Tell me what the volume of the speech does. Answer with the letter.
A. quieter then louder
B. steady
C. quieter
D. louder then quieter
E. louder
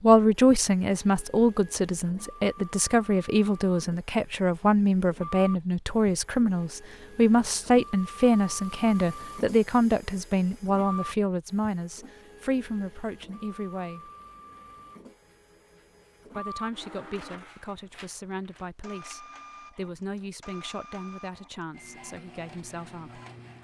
C.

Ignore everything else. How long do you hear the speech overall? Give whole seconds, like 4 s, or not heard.
21 s.